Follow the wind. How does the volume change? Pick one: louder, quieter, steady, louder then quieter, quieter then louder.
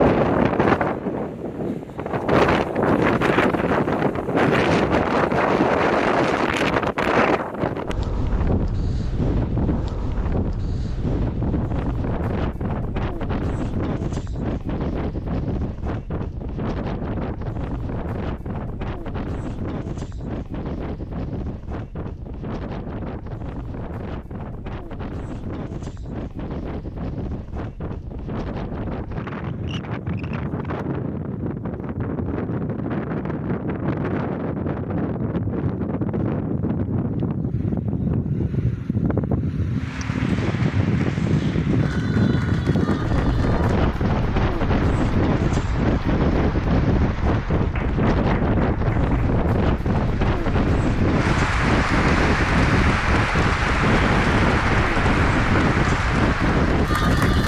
quieter then louder.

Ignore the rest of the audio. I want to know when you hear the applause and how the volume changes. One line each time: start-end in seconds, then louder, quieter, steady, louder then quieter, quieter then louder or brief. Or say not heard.
39.7-57.4 louder.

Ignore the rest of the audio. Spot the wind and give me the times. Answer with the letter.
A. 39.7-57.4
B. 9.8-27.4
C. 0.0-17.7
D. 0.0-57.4
D.